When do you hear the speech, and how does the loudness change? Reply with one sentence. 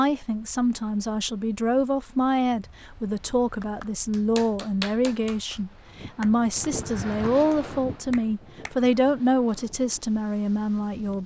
The speech can be heard from 0.0 to 11.2 s, at a steady volume.